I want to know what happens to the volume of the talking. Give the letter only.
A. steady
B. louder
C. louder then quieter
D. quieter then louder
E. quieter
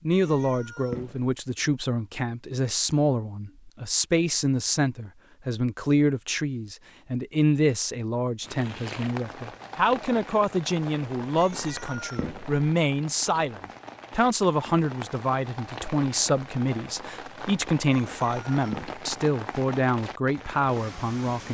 A.